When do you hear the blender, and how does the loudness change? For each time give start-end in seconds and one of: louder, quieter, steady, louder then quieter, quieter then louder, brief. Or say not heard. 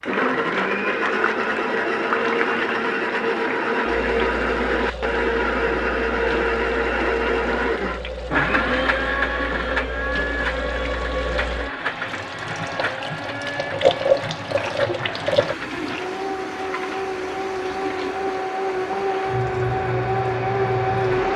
0.0-21.3 quieter then louder.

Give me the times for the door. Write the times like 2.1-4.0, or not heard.
not heard.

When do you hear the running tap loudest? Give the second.
14 s.